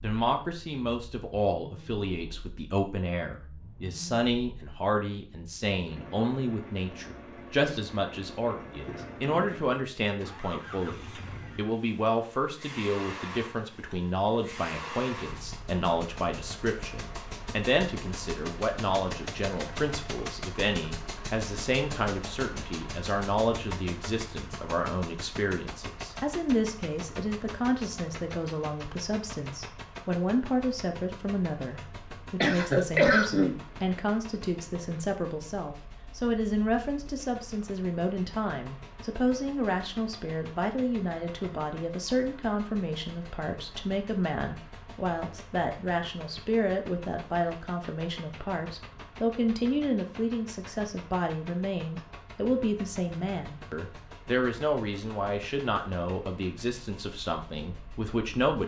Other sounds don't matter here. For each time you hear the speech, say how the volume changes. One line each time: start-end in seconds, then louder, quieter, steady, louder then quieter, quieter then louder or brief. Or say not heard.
0.0-58.6 steady.